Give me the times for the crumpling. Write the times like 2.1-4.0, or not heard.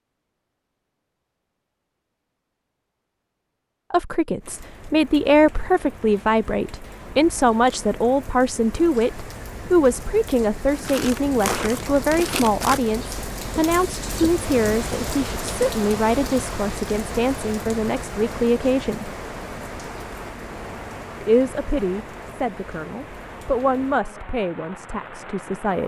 10.8-12.8.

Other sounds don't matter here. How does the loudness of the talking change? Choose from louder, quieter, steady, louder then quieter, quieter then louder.
quieter.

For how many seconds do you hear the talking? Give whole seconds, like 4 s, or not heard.
20 s.